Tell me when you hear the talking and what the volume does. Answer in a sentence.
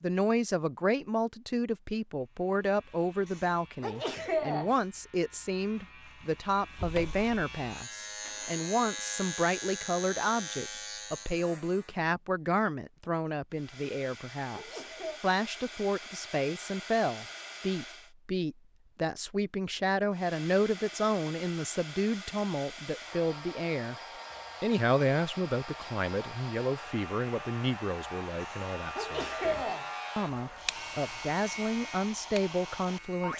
You can hear the talking from 0.0 to 23.9 s, at a steady volume; and from 24.6 to 33.3 s, getting quieter then louder.